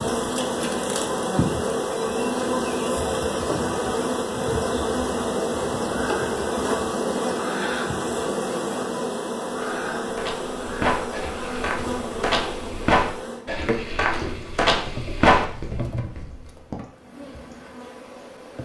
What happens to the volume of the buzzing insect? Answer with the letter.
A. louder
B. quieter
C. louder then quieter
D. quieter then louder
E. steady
B.